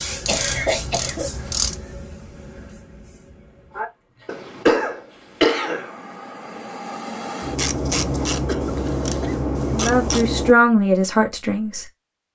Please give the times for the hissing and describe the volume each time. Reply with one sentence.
The hissing can be heard from 0.0 to 10.6 s, getting quieter then louder.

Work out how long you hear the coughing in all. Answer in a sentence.
You can hear the coughing for 4 seconds altogether.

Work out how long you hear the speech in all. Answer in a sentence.
You can hear the speech for 2 seconds altogether.